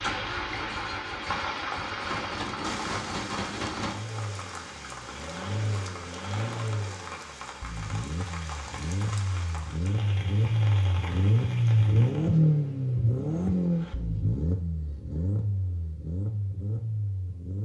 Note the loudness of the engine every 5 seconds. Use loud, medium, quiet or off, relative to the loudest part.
medium, medium, loud, medium.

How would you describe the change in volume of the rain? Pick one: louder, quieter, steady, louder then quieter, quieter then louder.
quieter.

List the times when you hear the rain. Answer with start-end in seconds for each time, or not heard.
0.0-12.4.